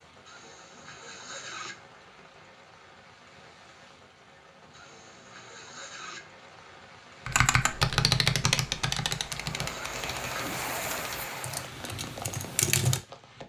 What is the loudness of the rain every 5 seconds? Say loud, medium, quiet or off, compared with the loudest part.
quiet, medium, loud.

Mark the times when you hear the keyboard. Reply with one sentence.
The keyboard can be heard from 7.2 to 13.0 s.